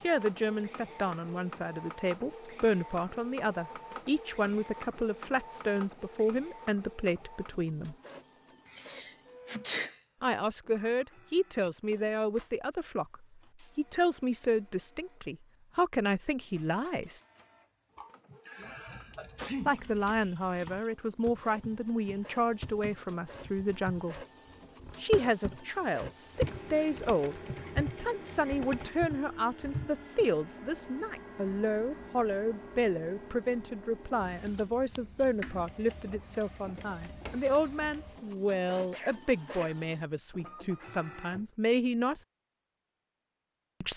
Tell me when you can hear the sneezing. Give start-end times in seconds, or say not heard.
8.7-10.0, 17.9-20.0, 38.9-40.4.